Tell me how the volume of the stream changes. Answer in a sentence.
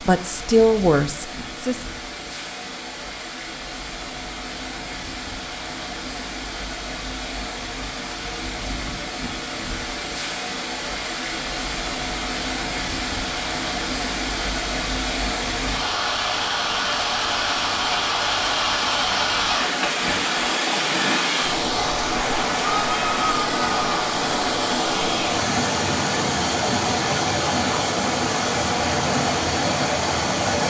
The loudness of the stream goes up.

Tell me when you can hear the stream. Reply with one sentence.
You can hear the stream from 0.0 to 30.6 s.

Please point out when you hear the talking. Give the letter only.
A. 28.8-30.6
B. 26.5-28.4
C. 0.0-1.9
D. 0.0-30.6
C.